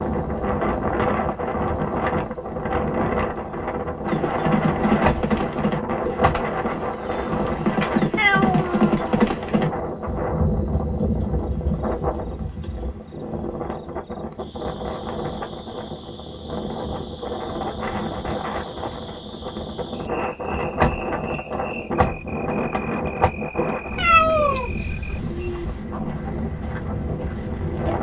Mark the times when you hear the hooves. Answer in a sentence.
The hooves can be heard from 4.0 to 13.0 s.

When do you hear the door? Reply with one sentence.
The door can be heard from 5.0 to 6.9 s and from 20.8 to 23.3 s.